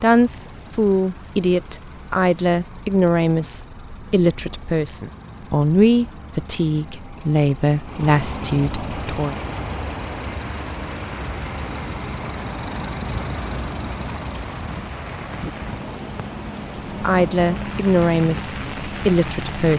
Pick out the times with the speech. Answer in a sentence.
The speech can be heard from 0.0 to 9.3 s and from 17.0 to 19.7 s.